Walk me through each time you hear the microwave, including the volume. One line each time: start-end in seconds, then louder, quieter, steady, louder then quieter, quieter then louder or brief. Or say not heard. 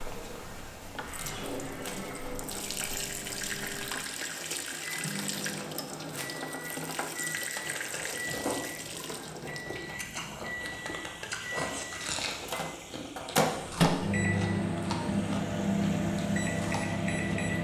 0.0-17.5 louder.